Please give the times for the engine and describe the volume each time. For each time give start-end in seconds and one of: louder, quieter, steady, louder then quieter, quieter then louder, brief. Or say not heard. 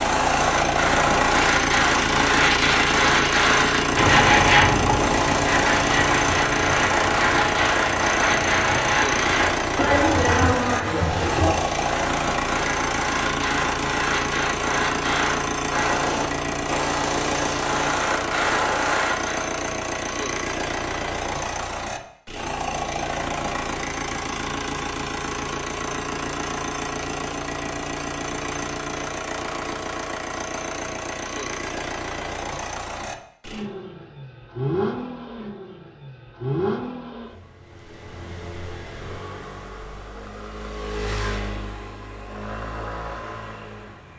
0.0-44.1 quieter.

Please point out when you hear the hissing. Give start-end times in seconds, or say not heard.
0.0-19.5.